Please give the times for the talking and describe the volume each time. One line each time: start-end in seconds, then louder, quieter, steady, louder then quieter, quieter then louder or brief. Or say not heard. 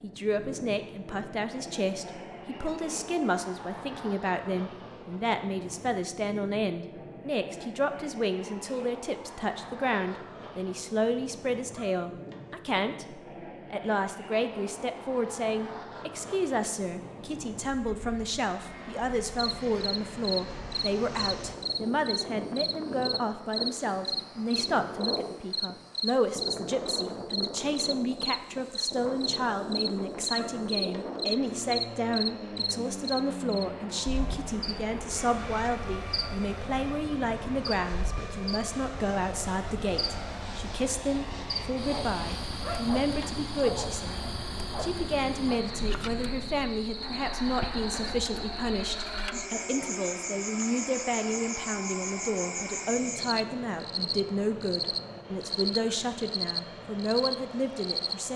0.0-58.3 steady.